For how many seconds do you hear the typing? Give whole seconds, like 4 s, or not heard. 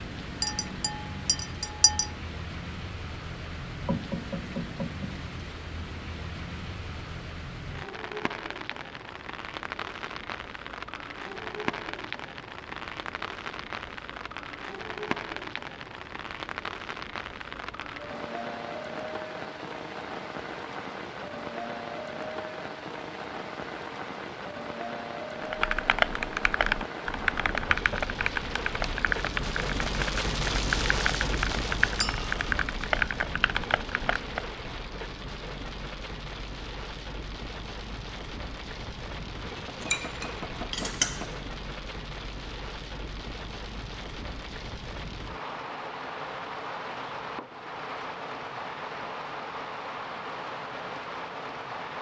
9 s.